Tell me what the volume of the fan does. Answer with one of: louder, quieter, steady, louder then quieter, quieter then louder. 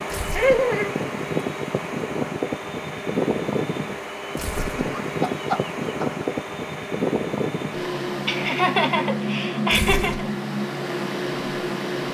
steady.